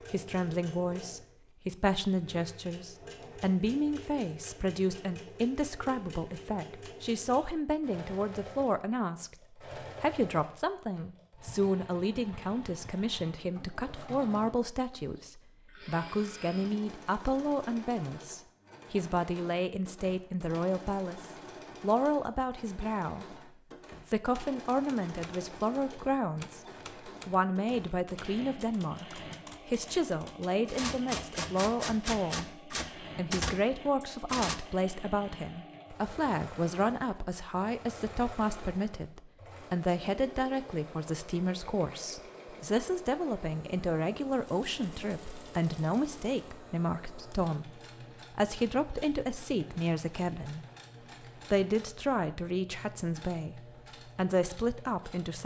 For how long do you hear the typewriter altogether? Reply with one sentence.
The typewriter can be heard for 10 seconds in total.